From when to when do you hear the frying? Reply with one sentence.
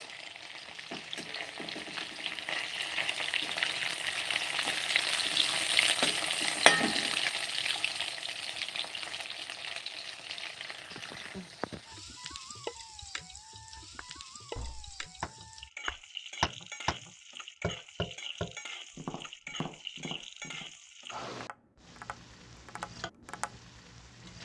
The frying can be heard from 0.0 to 24.4 s.